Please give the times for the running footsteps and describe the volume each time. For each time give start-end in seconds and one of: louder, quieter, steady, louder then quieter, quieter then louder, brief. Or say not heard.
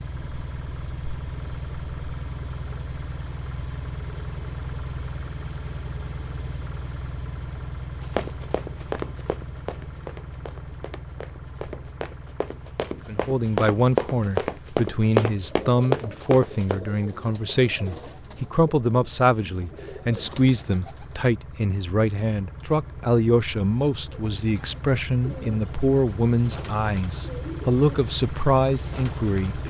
8.0-16.8 quieter then louder.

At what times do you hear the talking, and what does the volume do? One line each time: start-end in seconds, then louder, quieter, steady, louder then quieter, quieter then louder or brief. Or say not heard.
13.1-29.6 steady.